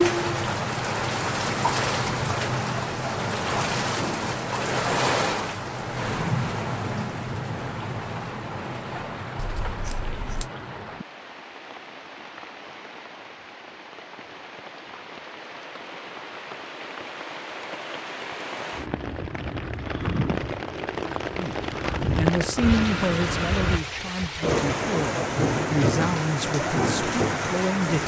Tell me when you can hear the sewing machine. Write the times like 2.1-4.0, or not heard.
not heard.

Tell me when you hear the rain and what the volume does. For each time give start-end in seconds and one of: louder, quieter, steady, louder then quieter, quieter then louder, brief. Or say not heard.
0.0-28.0 quieter then louder.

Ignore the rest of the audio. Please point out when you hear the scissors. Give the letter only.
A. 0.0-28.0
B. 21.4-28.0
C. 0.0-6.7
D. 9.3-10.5
D.